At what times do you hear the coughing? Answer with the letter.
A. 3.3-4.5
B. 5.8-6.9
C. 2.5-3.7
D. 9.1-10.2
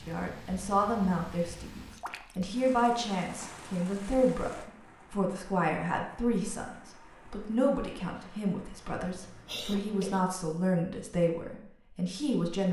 D.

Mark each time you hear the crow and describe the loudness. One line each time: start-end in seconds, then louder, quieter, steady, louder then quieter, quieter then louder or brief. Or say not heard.
not heard.